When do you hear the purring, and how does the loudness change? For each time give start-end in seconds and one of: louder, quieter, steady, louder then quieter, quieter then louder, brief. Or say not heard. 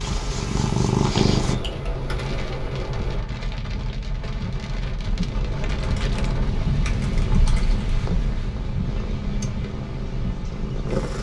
0.0-1.6 brief
5.0-11.1 steady.